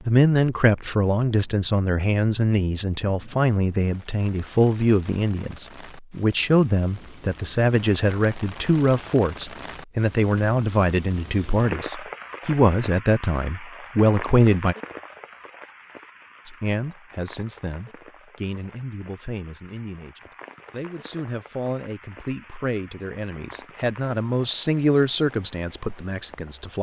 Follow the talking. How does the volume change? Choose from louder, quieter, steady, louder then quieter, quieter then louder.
quieter then louder.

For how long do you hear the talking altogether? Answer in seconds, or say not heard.
25 s.